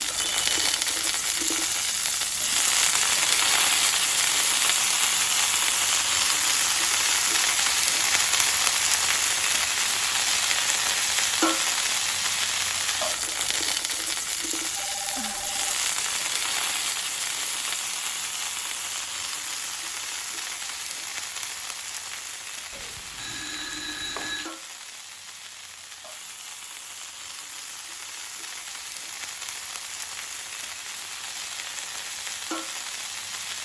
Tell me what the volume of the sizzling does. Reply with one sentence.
The loudness of the sizzling goes down.